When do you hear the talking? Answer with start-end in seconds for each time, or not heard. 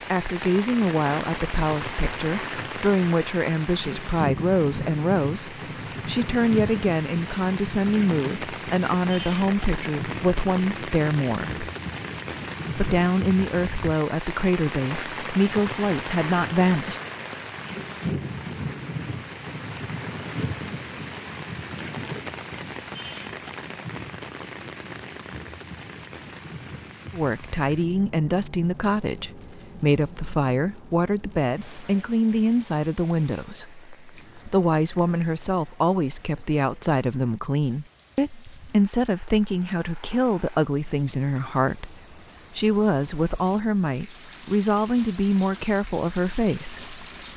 0.1-11.7, 12.8-17.0, 27.1-47.0.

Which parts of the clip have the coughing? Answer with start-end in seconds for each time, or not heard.
not heard.